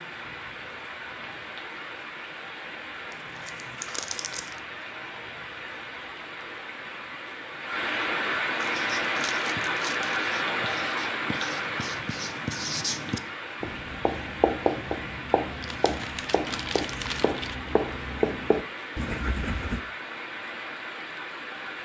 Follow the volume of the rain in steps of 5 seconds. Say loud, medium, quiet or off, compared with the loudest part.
medium, loud, loud, medium, medium.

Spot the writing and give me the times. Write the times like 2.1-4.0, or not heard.
8.7-19.8.